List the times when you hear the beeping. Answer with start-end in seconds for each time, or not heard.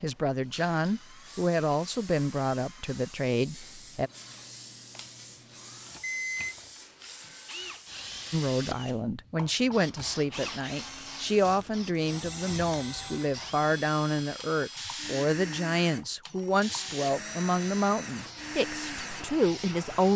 6.0-6.7.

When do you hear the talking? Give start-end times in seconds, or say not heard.
0.0-4.1, 8.3-20.1.